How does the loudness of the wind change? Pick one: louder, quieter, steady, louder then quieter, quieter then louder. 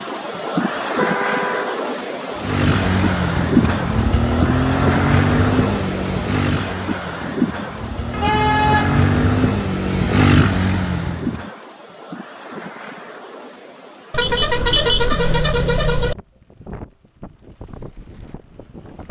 quieter.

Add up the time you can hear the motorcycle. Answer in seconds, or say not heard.
9 s.